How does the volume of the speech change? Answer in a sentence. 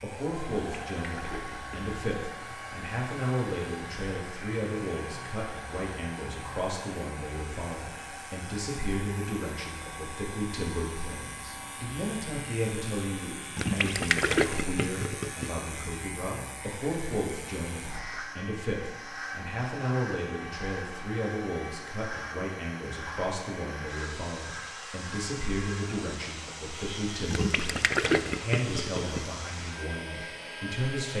The volume of the speech stays about the same.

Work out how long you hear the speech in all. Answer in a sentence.
The speech can be heard for 31 seconds in total.